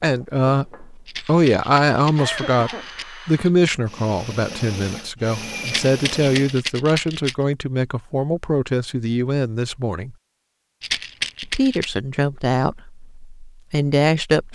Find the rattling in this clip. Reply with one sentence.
The rattling can be heard from 1.1 to 3.0 s, from 5.7 to 7.3 s and from 10.8 to 11.9 s.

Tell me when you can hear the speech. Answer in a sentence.
You can hear the speech from 0.0 to 10.2 s and from 11.4 to 14.5 s.